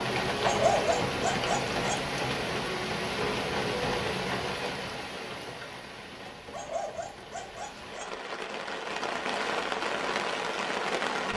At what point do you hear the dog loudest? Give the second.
1 s.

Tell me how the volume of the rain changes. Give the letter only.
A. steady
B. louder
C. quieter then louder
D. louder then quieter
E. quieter
C.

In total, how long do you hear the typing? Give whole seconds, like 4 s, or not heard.
not heard.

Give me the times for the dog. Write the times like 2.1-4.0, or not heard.
0.4-2.1, 6.3-8.2.